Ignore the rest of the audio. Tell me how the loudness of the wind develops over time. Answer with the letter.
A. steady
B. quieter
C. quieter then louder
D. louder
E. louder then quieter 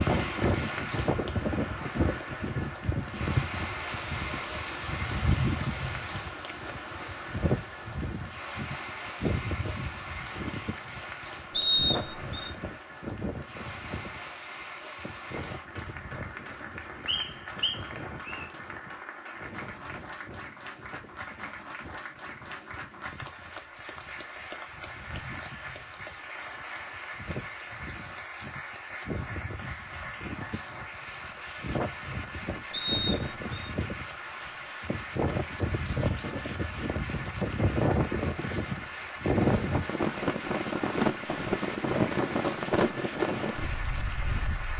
C.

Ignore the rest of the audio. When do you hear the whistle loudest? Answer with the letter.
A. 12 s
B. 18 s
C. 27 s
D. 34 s
A.